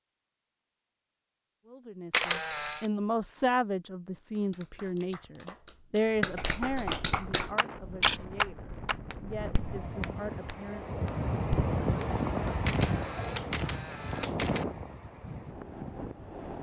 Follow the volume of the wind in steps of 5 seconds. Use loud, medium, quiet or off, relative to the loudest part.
off, medium, loud, medium.